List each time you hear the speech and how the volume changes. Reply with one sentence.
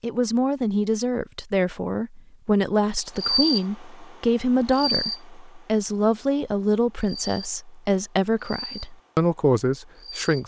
You can hear the speech from 0.0 to 10.4 s, at a steady volume.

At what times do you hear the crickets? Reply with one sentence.
The crickets can be heard from 3.1 to 10.4 s.